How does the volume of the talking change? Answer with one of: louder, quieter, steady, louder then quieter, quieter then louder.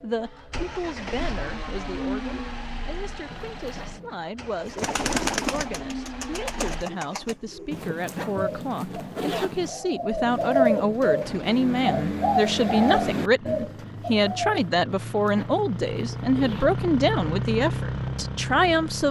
louder.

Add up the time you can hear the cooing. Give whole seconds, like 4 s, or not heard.
10 s.